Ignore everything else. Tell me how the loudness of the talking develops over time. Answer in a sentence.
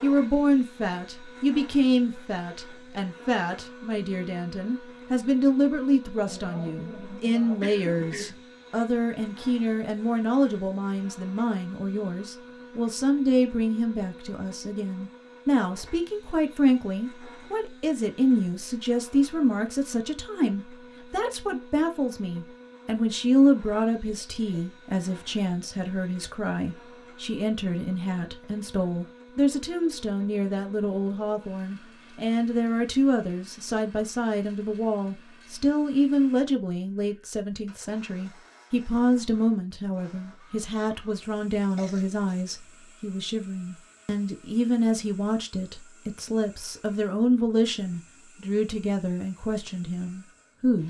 The loudness of the talking stays about the same.